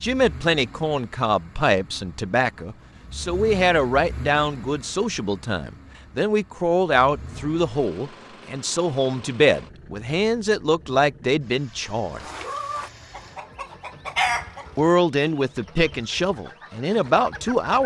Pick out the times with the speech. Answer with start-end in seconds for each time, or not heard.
0.0-12.2, 14.8-17.8.